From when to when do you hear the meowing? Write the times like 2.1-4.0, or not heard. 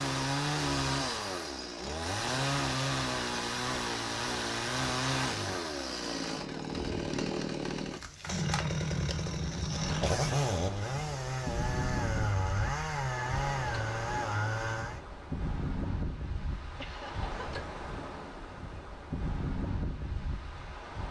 not heard.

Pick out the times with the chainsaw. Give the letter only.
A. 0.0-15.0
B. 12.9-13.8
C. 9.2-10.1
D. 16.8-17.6
A.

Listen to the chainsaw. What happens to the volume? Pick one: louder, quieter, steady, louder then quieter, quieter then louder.
steady.